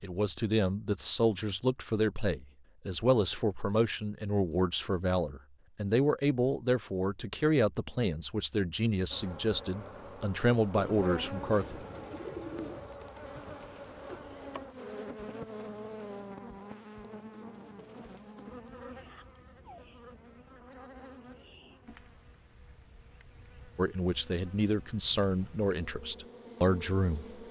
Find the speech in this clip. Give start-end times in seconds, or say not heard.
0.0-11.8, 23.8-27.4.